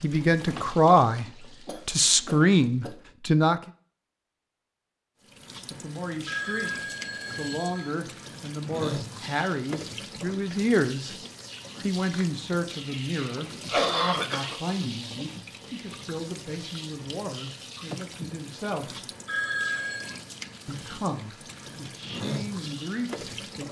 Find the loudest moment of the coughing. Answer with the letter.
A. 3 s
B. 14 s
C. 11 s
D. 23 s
B.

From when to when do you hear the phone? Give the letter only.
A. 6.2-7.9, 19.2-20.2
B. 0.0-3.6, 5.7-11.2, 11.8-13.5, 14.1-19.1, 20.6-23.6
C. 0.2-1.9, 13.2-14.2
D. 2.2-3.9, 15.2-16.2
A.